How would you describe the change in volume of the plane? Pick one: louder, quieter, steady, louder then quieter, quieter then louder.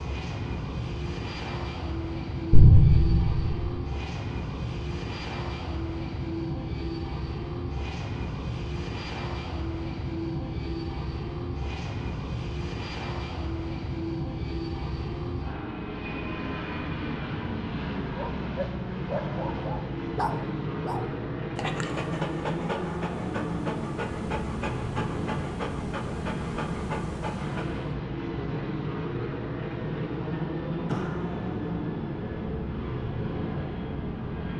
steady.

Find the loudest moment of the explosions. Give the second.
3 s.